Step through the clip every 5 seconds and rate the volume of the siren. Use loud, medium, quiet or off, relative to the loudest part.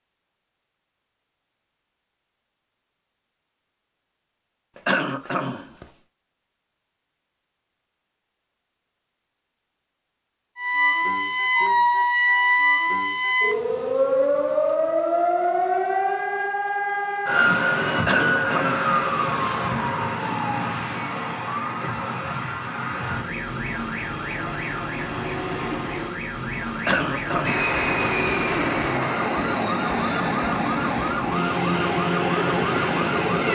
off, off, loud, loud, medium, medium, medium.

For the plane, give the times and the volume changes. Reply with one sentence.
You can hear the plane from 27.4 to 33.4 s, at a steady volume.